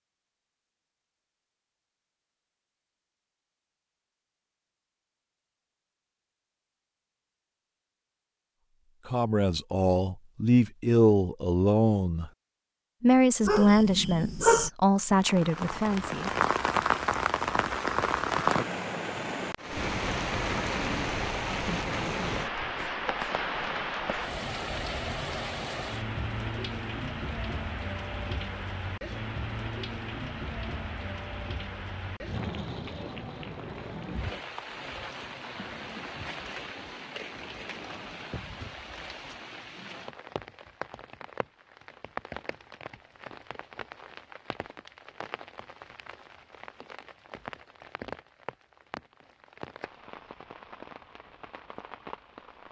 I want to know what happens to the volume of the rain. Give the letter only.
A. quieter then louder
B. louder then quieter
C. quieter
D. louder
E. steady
C.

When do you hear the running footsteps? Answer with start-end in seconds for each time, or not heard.
not heard.